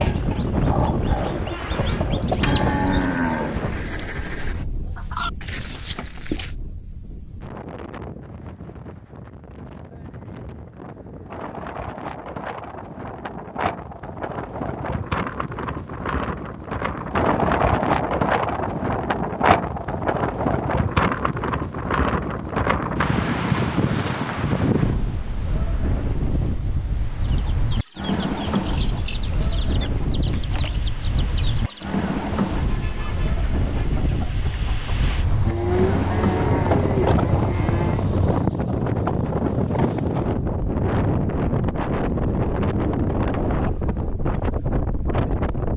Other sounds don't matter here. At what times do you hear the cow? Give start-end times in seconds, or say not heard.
2.5-4.7, 35.5-38.0.